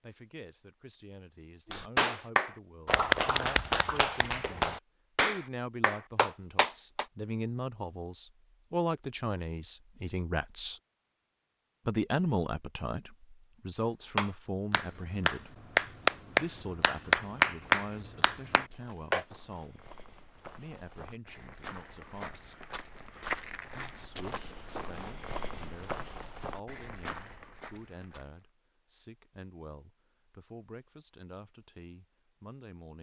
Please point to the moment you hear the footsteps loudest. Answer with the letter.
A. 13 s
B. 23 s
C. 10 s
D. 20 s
B.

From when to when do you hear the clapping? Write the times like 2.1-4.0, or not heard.
1.7-7.0, 14.2-19.2.